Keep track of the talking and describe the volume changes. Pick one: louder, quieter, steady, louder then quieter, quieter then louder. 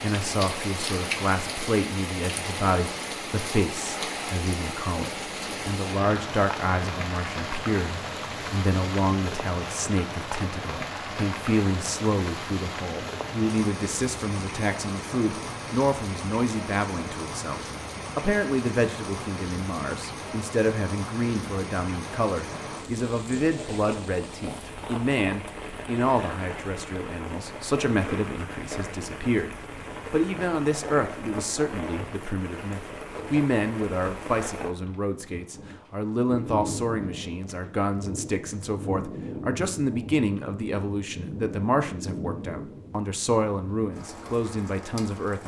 steady.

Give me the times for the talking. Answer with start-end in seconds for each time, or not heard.
0.0-45.4.